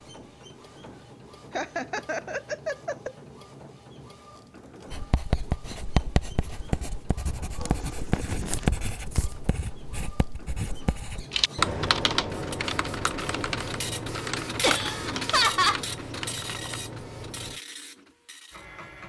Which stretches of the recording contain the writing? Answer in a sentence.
You can hear the writing from 4.9 to 11.2 s.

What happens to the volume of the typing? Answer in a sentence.
The volume of the typing goes down.